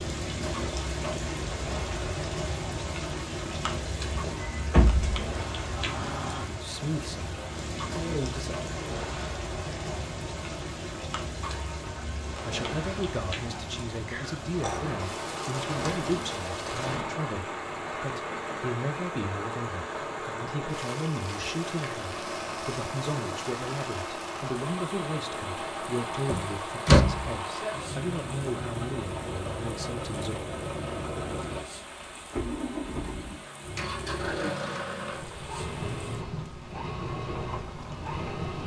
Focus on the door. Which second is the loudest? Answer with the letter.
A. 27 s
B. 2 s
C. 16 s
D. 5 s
A.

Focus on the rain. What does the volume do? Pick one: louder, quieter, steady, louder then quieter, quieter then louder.
quieter.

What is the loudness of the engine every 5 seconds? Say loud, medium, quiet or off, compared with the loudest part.
medium, medium, medium, loud, loud, loud, loud, loud.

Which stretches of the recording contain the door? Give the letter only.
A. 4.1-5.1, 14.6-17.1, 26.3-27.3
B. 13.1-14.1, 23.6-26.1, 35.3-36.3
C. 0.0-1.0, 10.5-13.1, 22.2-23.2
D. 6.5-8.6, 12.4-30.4
A.